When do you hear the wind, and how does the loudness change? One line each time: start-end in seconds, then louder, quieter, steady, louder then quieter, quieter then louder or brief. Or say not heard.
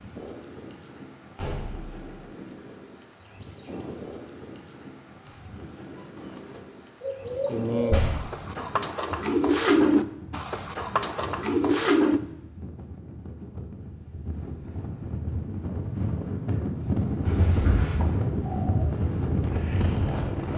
0.0-20.5 louder.